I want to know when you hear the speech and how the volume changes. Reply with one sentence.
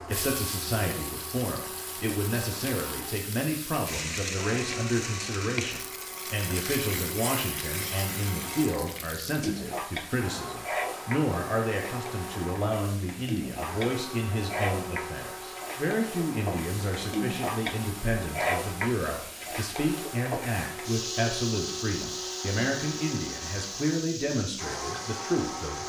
The speech can be heard from 0.1 to 25.8 s, at a steady volume.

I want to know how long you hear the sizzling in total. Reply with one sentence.
The sizzling can be heard for 26 seconds in total.